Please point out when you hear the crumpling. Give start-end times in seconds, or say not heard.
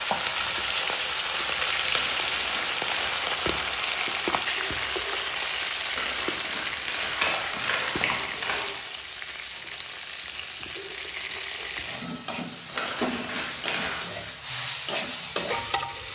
1.9-3.2, 5.9-8.7, 12.7-14.1.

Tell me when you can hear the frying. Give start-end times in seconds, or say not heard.
0.0-16.1.